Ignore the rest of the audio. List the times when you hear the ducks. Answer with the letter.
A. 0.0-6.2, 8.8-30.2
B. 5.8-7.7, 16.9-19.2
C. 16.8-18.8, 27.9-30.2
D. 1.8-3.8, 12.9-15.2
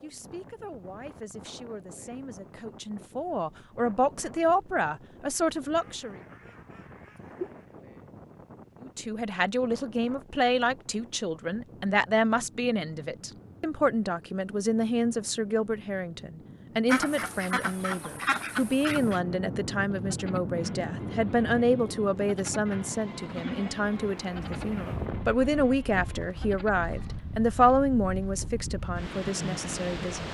B.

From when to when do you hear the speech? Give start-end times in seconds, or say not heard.
0.0-6.2, 8.8-30.2.